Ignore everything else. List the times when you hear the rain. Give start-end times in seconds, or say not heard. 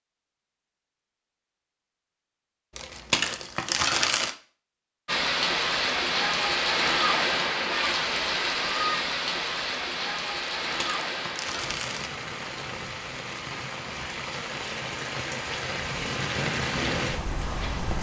5.0-17.9.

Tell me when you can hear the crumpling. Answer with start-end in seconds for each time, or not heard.
2.8-4.3, 10.7-12.1.